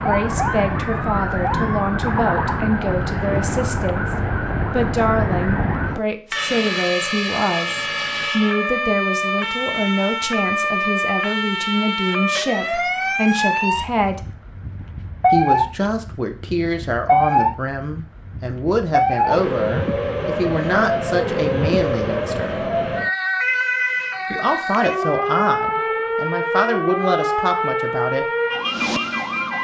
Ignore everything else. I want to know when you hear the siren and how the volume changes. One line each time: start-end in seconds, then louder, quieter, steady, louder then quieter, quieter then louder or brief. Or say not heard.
0.0-29.5 steady.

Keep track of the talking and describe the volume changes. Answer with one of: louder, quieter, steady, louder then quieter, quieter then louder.
steady.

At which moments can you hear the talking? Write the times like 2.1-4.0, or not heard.
0.0-14.3, 15.3-22.6, 24.3-28.2.